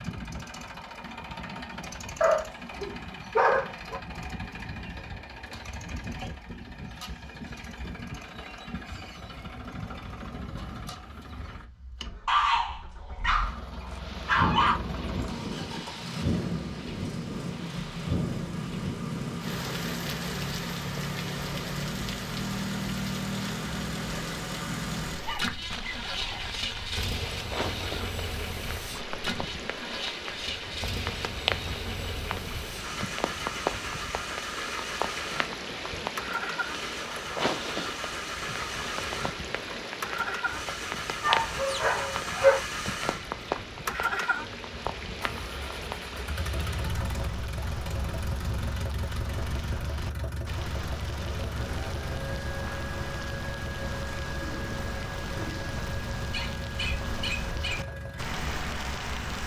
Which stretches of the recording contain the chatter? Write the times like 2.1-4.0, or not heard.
not heard.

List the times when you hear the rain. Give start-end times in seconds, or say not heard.
13.9-59.4.